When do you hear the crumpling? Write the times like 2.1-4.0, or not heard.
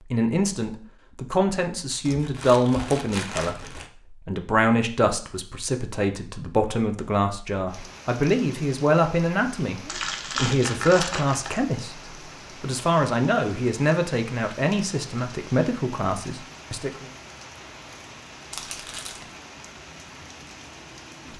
2.0-3.9, 9.8-11.6, 18.5-19.2.